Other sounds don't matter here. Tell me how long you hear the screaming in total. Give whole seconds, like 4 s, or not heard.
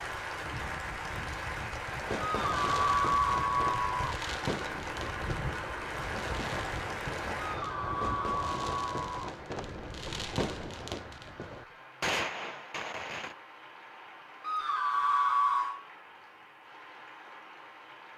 5 s.